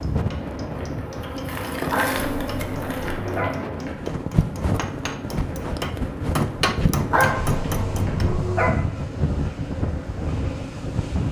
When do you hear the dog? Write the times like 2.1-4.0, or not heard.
1.9-3.5, 7.1-8.7.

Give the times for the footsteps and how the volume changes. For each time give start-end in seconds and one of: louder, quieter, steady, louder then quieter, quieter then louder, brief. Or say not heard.
not heard.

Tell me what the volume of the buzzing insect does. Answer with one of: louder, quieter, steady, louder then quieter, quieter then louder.
quieter.